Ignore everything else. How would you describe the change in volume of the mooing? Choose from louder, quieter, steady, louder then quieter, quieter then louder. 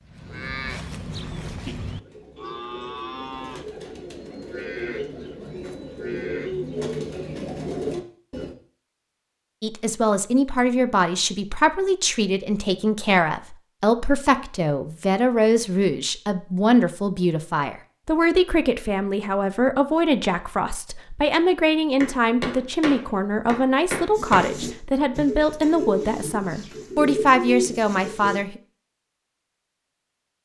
quieter.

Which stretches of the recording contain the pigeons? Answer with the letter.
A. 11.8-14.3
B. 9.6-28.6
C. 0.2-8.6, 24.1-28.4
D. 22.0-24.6
C.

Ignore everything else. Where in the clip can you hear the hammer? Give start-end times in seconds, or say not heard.
22.0-24.6.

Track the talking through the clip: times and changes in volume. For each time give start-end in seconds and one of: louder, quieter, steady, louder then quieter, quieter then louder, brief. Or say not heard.
9.6-28.6 steady.